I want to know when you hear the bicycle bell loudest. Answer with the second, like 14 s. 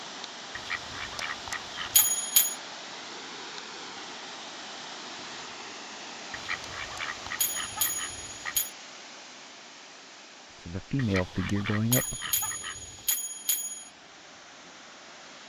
2 s.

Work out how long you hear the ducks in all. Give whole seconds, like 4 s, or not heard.
6 s.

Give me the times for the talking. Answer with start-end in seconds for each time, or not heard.
10.6-12.3.